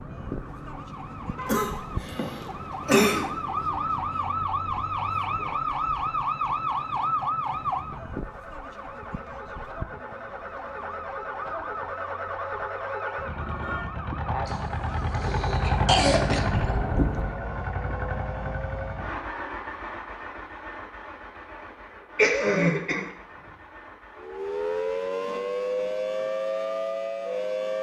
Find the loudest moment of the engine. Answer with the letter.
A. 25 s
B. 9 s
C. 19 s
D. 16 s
D.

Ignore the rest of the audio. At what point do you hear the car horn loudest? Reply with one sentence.
The loudest moment of the car horn is at 17 seconds.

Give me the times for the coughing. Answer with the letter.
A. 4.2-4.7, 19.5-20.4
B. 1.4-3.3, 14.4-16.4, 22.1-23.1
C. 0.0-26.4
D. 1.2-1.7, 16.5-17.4
B.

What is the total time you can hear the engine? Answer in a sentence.
The engine can be heard for 26 seconds in total.